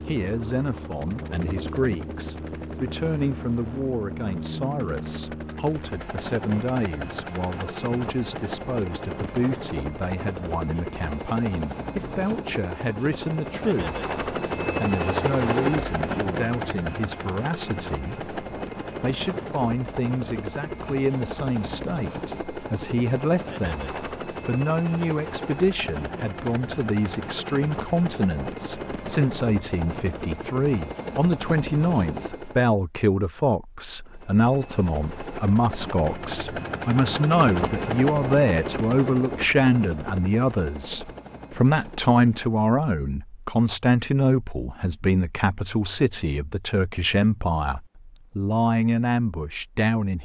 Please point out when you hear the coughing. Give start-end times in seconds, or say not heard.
not heard.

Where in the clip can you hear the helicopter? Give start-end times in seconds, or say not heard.
0.0-32.7, 34.0-42.5.